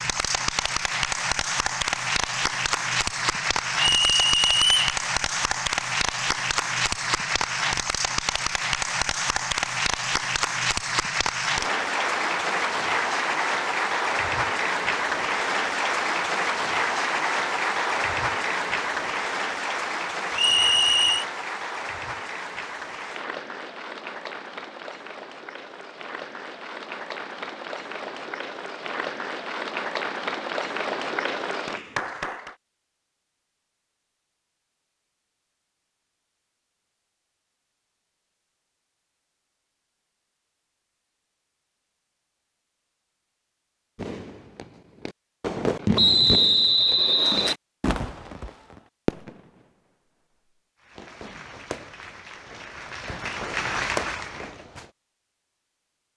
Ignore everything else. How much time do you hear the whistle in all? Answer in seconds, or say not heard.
4 s.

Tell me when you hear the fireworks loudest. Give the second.
46 s.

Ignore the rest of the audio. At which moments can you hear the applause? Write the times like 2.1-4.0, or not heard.
0.0-32.5, 50.8-54.6.